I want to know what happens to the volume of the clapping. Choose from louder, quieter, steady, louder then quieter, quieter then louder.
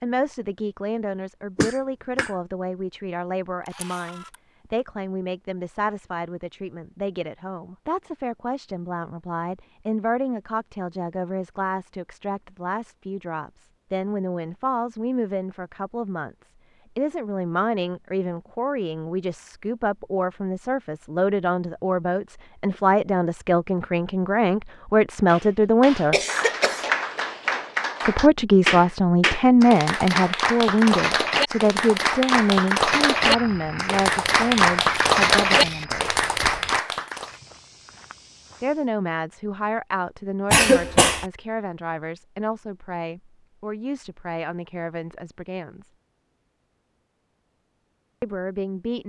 louder.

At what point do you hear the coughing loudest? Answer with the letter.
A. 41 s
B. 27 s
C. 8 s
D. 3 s
A.